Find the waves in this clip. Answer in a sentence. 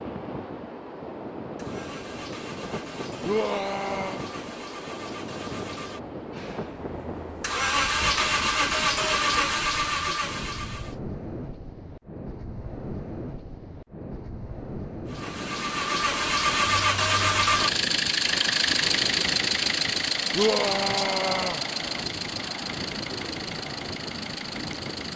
You can hear the waves from 0.0 to 25.1 s.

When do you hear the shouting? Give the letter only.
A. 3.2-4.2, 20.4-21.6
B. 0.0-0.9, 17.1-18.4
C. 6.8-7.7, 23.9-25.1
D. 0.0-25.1
A.